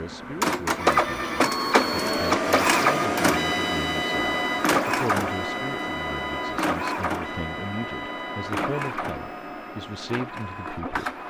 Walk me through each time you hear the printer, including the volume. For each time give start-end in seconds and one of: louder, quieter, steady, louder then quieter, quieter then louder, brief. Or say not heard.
0.0-11.2 quieter.